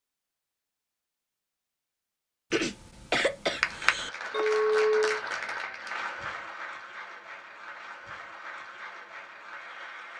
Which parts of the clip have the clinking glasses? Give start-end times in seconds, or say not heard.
4.3-5.2.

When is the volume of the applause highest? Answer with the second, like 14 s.
4 s.